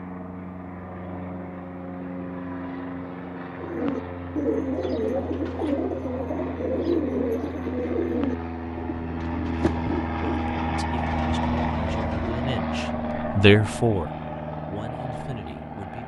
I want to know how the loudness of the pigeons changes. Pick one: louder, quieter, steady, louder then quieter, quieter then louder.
quieter.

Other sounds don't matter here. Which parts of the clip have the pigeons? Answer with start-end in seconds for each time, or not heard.
3.6-12.4.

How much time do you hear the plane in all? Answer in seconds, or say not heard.
16 s.